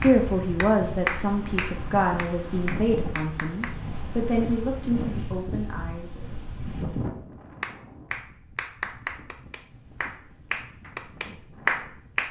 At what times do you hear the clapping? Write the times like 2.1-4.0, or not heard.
0.0-3.8, 7.6-12.2.